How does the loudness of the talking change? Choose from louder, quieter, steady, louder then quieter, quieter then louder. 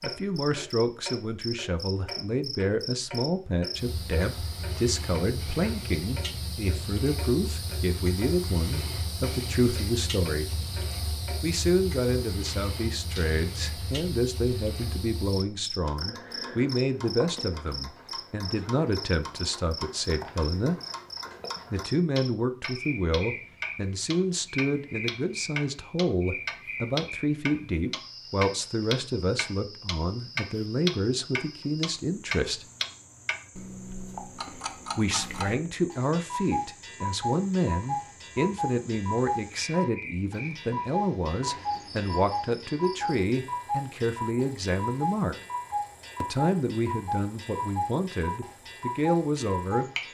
steady.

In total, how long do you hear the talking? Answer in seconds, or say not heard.
45 s.